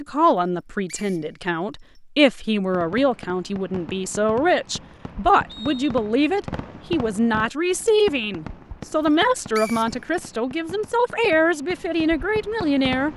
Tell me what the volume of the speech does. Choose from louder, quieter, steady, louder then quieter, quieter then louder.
steady.